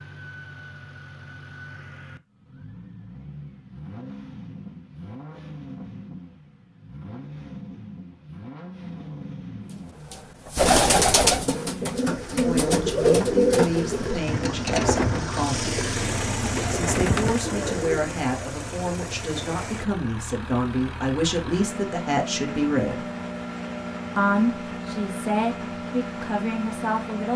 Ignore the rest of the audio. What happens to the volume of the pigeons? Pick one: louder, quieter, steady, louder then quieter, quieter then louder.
quieter.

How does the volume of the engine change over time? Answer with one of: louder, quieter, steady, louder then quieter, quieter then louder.
louder.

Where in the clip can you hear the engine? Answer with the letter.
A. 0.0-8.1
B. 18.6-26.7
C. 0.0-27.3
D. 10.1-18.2
C.